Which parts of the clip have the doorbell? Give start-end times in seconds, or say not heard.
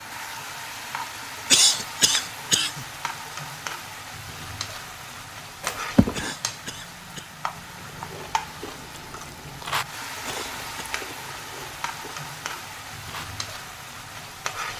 5.6-6.3.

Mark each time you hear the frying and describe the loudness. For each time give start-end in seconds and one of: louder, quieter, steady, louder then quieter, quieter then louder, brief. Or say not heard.
0.0-14.7 steady.